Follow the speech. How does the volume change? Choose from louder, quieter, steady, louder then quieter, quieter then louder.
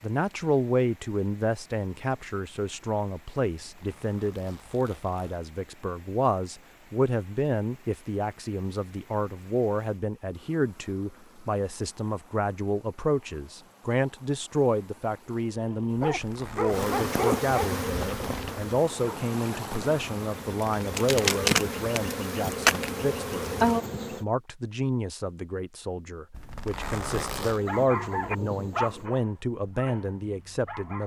steady.